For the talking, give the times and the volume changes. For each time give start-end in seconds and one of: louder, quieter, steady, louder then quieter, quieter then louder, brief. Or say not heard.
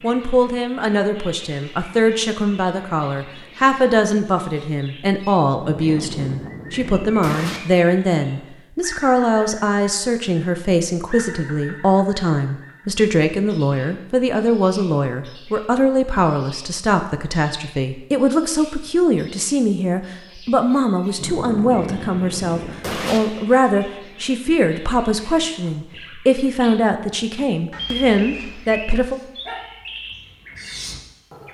0.0-29.2 steady.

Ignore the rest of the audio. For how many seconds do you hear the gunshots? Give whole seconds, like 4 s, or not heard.
4 s.